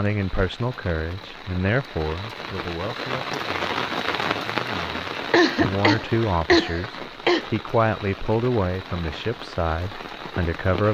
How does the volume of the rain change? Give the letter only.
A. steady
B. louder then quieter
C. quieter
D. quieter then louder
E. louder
B.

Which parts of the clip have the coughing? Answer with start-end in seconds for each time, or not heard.
5.3-7.5.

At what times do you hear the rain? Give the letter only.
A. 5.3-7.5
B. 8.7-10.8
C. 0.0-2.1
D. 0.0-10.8
D.